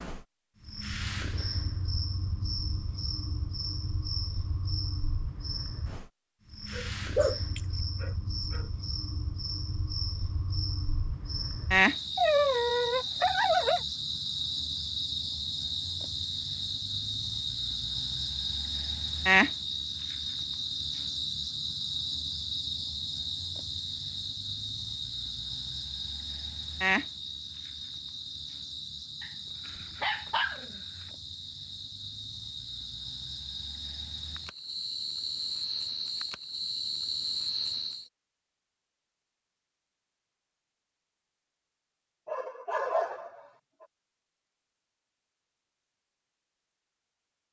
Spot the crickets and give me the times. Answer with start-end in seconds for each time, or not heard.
0.0-38.1.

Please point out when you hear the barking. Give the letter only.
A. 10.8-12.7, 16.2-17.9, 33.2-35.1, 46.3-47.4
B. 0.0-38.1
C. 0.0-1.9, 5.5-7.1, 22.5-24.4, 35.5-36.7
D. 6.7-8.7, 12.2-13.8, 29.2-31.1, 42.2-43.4
D.